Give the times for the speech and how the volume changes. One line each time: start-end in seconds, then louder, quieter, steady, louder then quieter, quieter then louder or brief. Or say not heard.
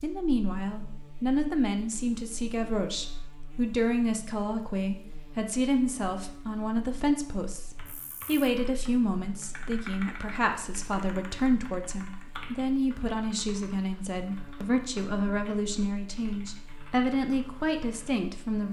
0.0-18.6 steady.